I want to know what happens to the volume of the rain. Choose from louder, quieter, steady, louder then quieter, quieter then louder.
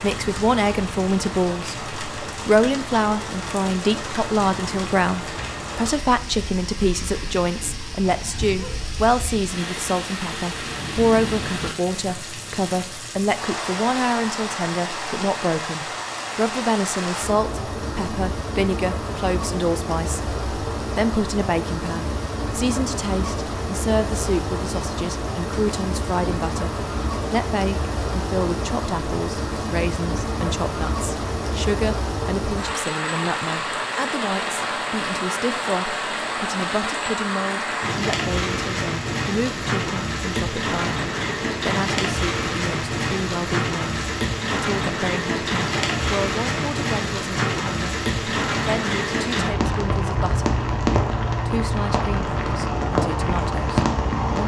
louder.